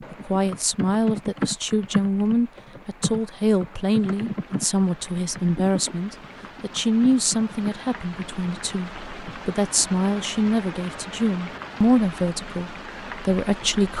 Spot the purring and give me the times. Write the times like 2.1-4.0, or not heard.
not heard.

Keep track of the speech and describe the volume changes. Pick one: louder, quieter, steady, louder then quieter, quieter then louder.
steady.